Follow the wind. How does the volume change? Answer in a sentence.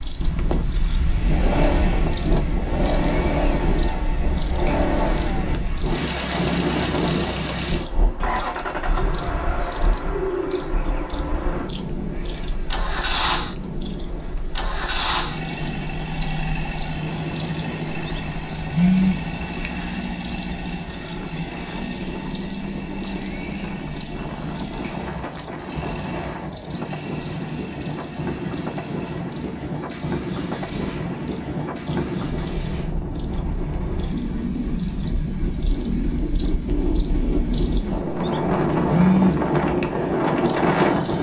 The volume of the wind goes down, then up.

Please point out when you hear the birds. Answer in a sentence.
The birds can be heard from 0.0 to 41.1 s.